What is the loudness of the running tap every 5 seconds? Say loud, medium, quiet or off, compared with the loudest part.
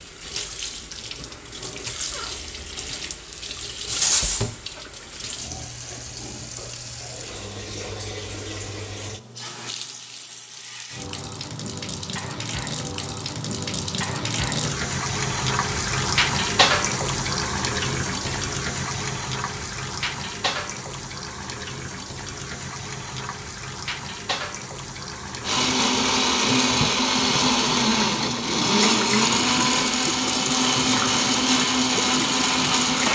medium, medium, medium, loud, medium, medium, medium.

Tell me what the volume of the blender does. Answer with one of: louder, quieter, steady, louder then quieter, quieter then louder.
steady.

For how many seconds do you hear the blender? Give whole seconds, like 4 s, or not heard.
8 s.